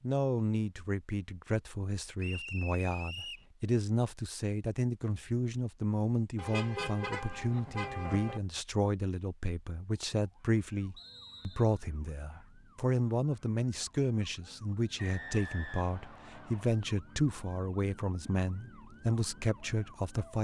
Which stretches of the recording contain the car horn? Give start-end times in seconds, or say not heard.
6.3-8.4.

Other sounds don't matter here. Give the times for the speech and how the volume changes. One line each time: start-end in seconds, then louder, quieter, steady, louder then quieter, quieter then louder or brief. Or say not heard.
0.0-20.3 steady.